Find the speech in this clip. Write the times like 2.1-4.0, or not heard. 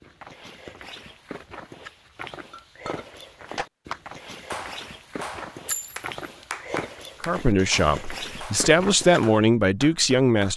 7.2-10.5.